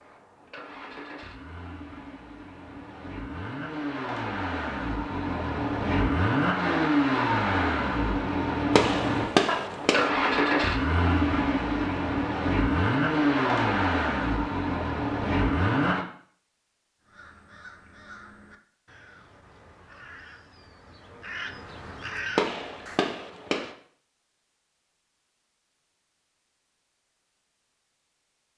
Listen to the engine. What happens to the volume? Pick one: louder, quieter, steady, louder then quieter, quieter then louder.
louder.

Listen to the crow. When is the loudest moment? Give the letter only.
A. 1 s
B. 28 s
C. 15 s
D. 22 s
D.